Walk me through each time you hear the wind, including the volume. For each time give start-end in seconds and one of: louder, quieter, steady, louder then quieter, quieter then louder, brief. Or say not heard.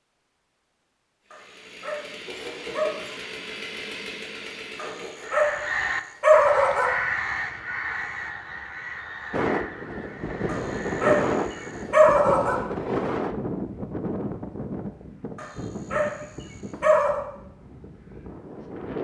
9.3-18.9 quieter.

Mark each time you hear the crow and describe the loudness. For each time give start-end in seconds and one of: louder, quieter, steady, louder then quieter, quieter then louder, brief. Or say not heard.
5.2-12.0 quieter.